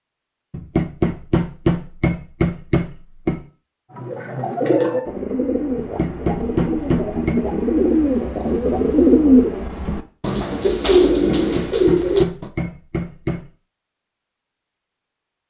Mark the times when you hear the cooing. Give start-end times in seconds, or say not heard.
3.9-12.5.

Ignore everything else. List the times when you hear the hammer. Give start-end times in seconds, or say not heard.
0.5-3.4, 5.8-7.4, 11.1-13.5.